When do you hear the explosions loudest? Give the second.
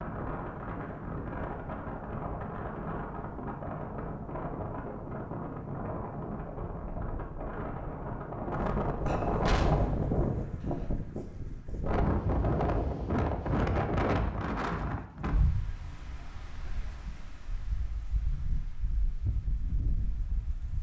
10 s.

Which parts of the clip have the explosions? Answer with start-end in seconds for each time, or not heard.
9.4-10.9.